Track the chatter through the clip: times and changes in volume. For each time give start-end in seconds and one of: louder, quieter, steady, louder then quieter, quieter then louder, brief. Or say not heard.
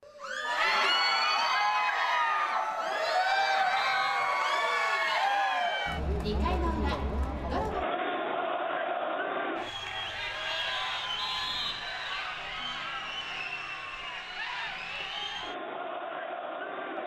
0.1-17.0 quieter.